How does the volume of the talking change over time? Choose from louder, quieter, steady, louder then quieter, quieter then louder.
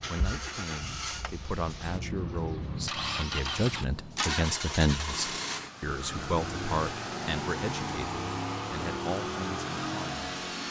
louder then quieter.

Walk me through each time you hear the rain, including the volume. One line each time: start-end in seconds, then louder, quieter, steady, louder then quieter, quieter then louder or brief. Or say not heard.
not heard.